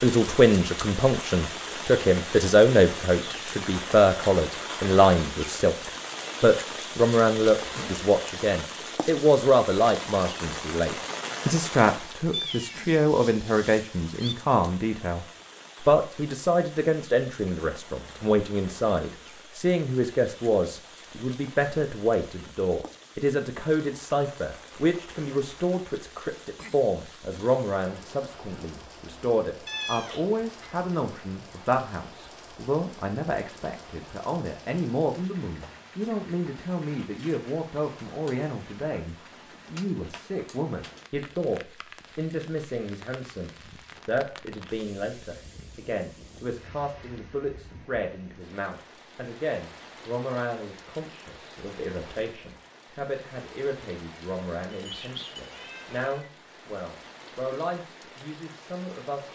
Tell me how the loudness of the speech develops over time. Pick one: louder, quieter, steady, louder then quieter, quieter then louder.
quieter.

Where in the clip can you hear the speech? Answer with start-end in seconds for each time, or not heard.
0.0-59.3.